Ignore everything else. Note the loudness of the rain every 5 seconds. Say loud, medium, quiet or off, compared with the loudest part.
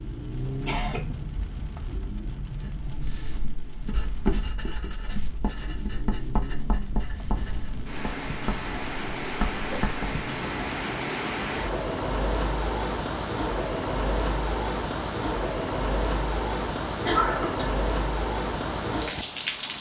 medium, medium, loud, loud.